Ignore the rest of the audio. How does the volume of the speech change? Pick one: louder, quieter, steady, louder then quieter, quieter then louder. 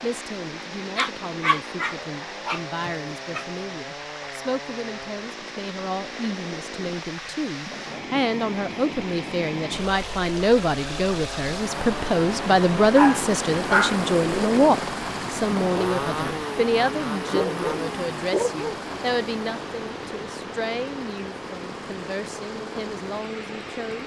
louder then quieter.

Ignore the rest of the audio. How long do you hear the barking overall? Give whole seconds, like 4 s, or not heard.
5 s.